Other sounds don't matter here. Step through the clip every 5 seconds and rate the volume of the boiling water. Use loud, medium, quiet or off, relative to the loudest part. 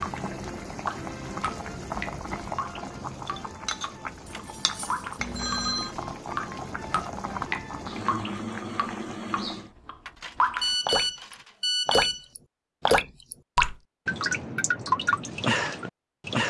loud, loud, off, off.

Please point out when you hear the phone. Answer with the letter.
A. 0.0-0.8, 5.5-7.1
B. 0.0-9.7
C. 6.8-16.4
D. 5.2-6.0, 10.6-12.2
D.